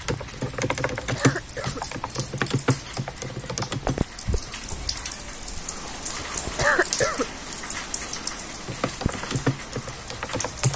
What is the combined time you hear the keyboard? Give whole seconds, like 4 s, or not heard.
6 s.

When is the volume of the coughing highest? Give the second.
7 s.